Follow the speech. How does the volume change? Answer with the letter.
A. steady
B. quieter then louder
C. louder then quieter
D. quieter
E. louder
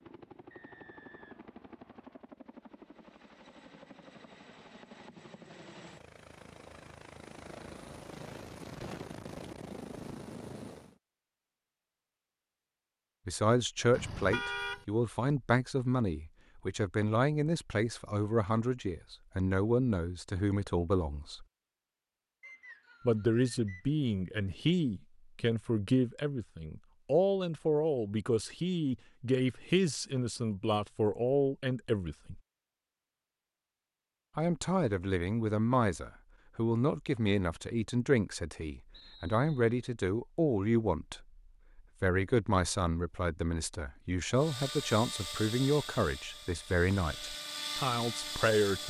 A.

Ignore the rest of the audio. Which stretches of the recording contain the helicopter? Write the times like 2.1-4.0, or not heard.
0.0-11.0, 44.3-48.8.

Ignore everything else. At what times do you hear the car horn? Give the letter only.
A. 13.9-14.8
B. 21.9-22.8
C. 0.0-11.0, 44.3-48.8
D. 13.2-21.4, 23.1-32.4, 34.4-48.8
A.